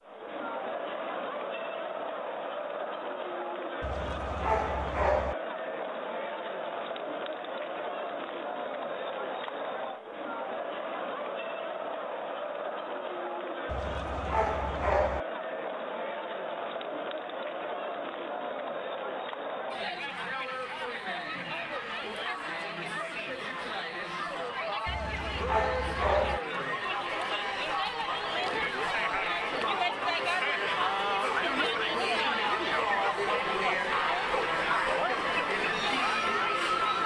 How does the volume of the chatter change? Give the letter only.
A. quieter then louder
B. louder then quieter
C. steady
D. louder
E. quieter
D.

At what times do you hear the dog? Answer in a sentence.
You can hear the dog from 3.8 to 5.3 s, from 13.7 to 15.2 s and from 24.9 to 26.4 s.